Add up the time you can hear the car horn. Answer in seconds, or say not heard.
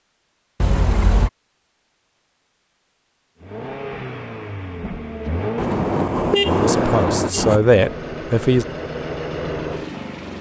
3 s.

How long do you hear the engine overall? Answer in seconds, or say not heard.
7 s.